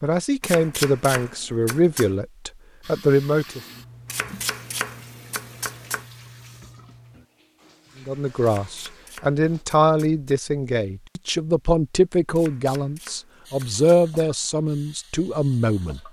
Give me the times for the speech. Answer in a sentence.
You can hear the speech from 0.0 to 3.6 s and from 8.1 to 16.0 s.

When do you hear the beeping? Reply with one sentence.
You can't hear the beeping here.